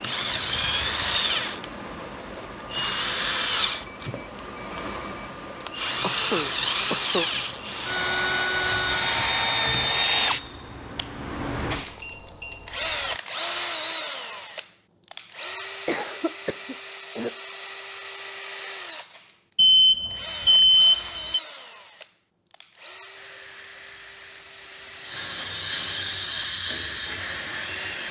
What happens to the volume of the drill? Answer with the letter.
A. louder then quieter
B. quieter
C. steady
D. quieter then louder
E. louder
B.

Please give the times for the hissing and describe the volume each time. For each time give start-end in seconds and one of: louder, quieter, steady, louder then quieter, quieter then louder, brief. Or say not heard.
8.6-10.4 brief
23.1-28.0 louder.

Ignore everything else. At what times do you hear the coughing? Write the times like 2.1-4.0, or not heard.
6.0-7.2, 15.8-17.4.